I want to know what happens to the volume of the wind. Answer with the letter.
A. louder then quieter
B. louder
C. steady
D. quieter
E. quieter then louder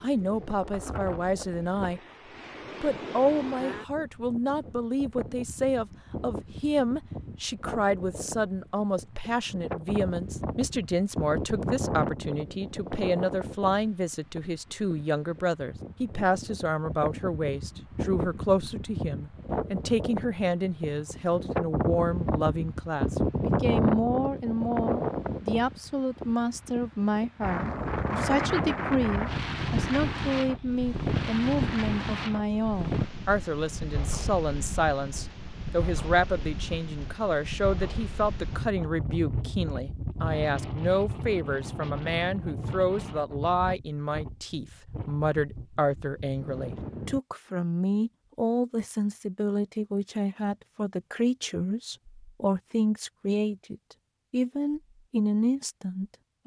A.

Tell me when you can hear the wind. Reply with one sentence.
You can hear the wind from 0.0 to 47.2 s.